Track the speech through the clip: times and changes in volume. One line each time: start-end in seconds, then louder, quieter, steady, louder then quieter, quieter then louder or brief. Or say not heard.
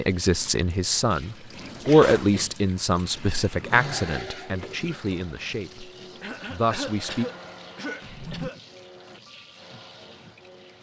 0.0-5.9 louder then quieter
6.5-7.2 brief.